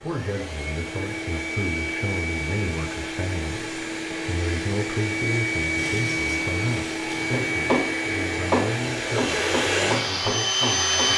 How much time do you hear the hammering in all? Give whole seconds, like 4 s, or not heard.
4 s.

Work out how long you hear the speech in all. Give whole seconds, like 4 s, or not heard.
11 s.